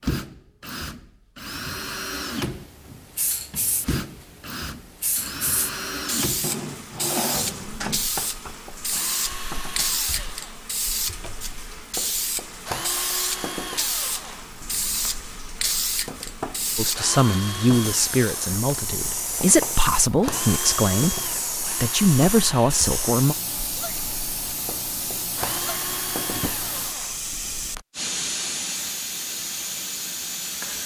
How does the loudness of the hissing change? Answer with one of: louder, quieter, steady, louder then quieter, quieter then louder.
steady.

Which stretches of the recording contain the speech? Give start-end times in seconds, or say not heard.
16.8-23.4.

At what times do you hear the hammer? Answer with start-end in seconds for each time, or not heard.
not heard.